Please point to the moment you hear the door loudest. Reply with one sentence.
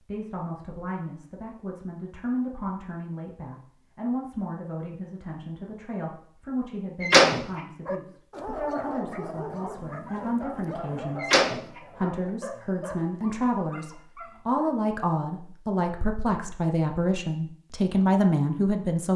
The loudest moment of the door is at 7 seconds.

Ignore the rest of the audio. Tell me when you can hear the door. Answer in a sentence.
You can hear the door from 7.0 to 7.6 s and from 11.2 to 11.8 s.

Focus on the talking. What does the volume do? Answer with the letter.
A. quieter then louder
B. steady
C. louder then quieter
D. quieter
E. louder
E.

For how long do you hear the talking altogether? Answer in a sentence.
You can hear the talking for 19 seconds altogether.